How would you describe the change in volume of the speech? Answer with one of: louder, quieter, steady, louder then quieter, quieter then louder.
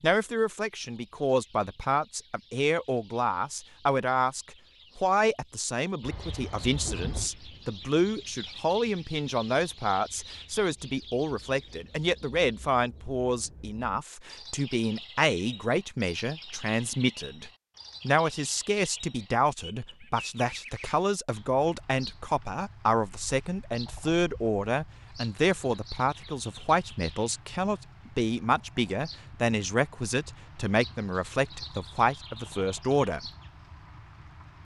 steady.